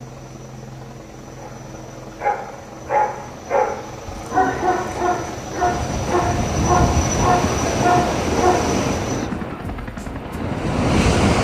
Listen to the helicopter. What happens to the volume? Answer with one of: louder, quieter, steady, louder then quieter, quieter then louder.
louder.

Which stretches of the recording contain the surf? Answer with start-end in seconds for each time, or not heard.
5.6-11.3.